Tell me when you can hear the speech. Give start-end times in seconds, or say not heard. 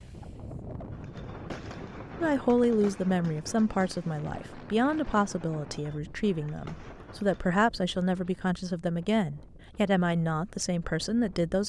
2.2-11.6.